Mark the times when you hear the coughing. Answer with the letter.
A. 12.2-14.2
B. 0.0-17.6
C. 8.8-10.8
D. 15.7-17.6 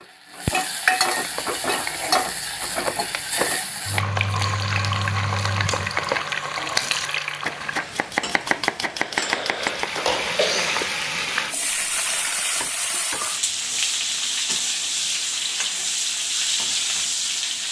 C.